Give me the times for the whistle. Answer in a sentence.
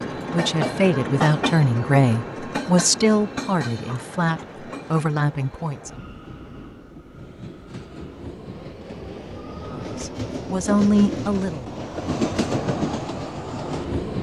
The whistle can't be heard in this clip.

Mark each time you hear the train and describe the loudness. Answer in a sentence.
The train can be heard from 0.0 to 14.1 s, getting quieter then louder.